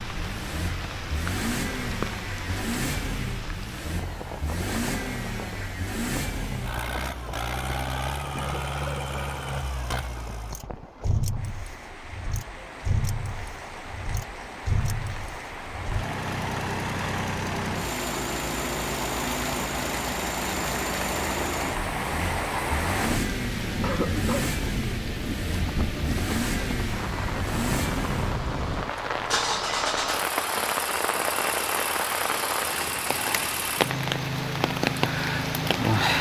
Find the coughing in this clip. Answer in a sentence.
You can hear the coughing from 8.3 to 9.1 s and from 23.8 to 24.5 s.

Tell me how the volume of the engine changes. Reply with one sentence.
The volume of the engine stays about the same.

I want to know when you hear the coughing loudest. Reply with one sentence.
The volume of the coughing peaks at 24 seconds.